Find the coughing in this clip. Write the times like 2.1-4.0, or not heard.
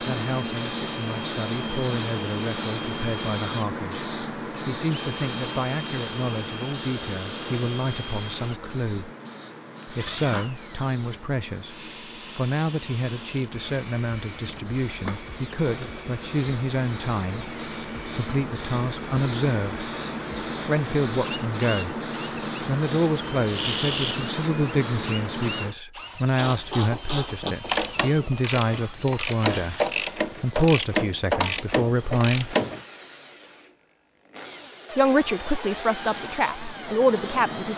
23.5-24.2.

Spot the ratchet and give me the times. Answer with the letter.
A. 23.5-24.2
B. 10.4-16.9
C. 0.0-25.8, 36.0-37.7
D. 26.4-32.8
D.